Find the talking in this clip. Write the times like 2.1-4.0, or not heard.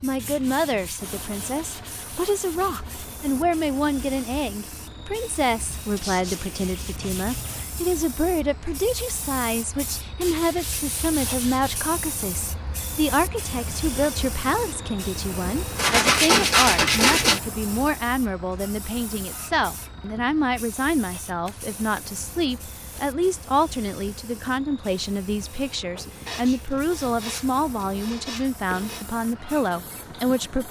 0.0-30.6.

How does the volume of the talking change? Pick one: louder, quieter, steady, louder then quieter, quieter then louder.
steady.